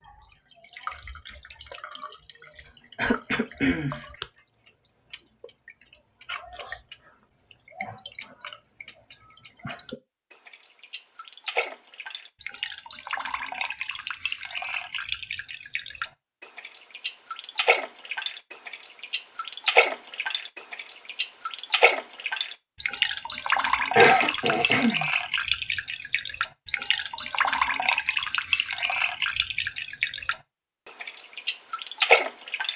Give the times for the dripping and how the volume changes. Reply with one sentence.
The dripping can be heard from 0.0 to 30.4 s, getting louder; and briefly from 31.0 to 32.7 s.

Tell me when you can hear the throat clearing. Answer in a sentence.
You can hear the throat clearing from 2.6 to 4.0 s and from 23.9 to 25.1 s.